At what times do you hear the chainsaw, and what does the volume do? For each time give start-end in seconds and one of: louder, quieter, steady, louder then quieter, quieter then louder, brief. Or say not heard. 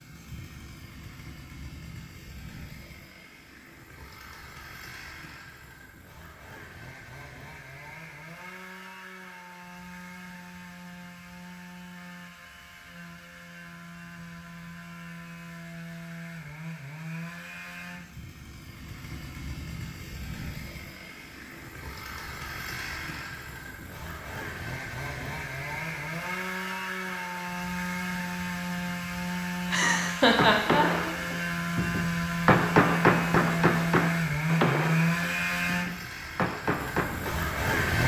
0.0-38.0 louder.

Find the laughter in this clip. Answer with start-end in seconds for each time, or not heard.
29.7-31.1.